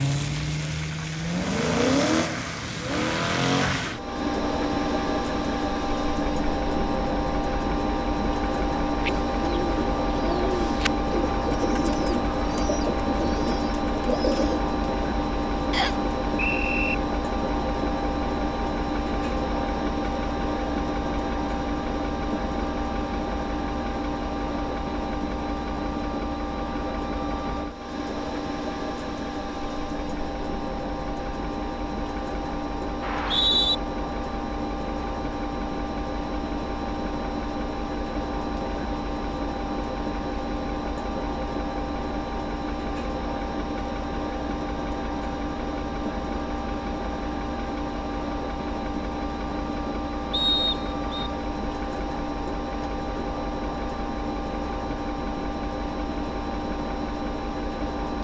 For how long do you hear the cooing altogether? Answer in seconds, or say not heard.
6 s.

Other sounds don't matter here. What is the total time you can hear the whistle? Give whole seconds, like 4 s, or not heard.
3 s.